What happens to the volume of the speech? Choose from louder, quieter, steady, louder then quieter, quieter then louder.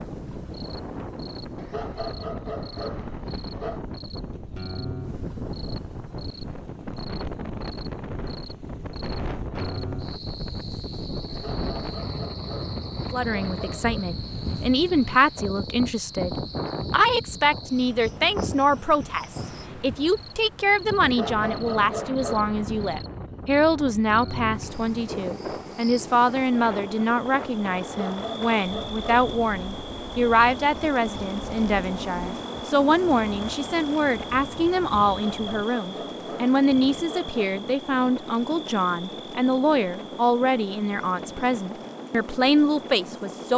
steady.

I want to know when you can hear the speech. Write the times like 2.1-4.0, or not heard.
13.1-43.5.